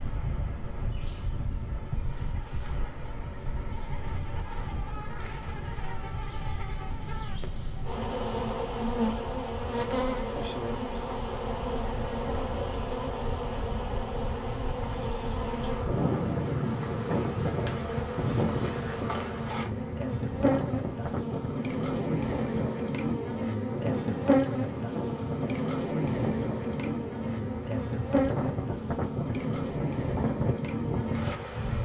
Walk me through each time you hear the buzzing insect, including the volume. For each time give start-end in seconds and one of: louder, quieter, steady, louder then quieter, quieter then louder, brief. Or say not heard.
0.0-31.8 louder.